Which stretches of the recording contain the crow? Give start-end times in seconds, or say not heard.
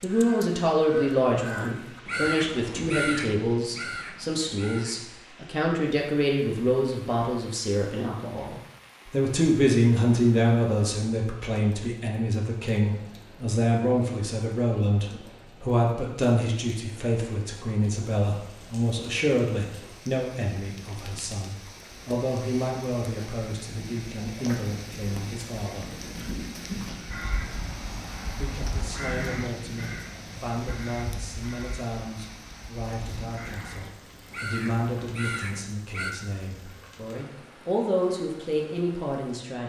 0.0-5.0, 27.1-36.1.